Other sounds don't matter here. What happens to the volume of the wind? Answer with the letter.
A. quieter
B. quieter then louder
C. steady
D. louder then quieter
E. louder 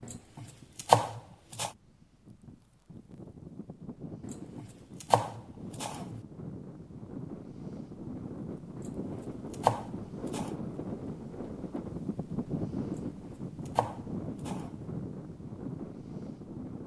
E.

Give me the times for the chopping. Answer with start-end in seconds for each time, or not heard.
0.0-1.7, 4.2-6.2, 8.8-10.5, 12.9-14.8.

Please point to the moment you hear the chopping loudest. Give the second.
1 s.